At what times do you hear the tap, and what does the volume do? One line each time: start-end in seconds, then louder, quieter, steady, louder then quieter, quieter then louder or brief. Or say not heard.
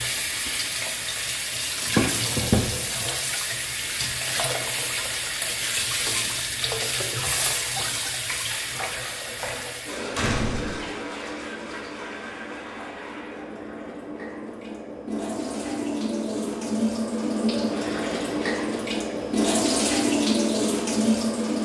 0.0-21.5 quieter then louder.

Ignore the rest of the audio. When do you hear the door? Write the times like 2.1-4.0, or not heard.
10.1-10.8.